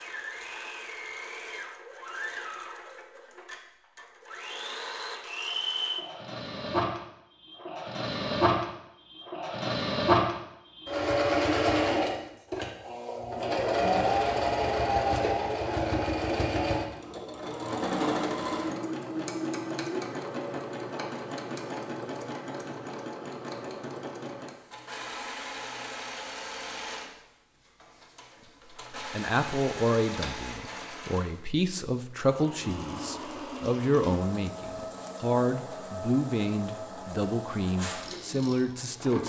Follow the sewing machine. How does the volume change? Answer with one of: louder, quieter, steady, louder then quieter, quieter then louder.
louder then quieter.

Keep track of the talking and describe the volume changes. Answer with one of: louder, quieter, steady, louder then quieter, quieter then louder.
steady.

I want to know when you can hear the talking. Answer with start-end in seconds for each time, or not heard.
28.9-39.2.